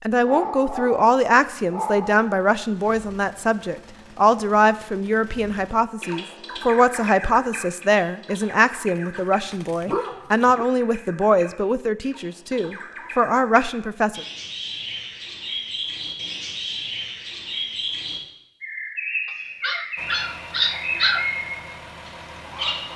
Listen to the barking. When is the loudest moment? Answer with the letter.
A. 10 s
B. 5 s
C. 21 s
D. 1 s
C.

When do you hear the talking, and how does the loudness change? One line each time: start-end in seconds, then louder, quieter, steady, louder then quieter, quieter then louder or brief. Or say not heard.
0.0-14.2 steady.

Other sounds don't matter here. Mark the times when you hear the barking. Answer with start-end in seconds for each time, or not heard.
0.2-2.4, 8.9-10.7, 19.6-21.3.